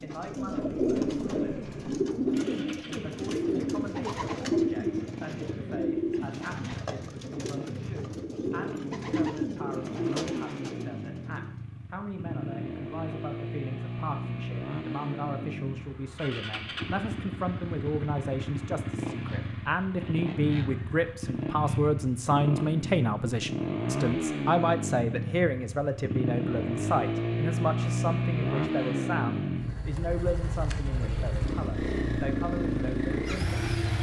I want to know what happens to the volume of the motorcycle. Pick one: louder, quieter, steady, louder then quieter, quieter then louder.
louder.